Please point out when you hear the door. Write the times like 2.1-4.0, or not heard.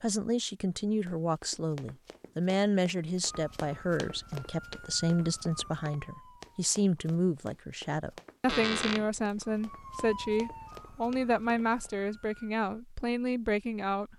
8.4-9.1.